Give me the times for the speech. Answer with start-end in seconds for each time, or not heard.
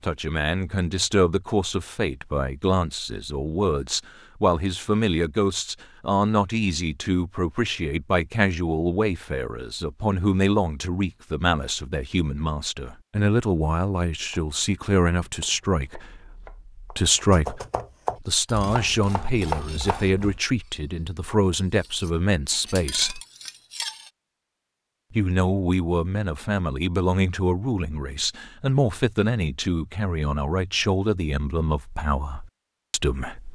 0.0-23.2, 25.1-33.5.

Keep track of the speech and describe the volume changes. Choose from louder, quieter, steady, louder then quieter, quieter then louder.
steady.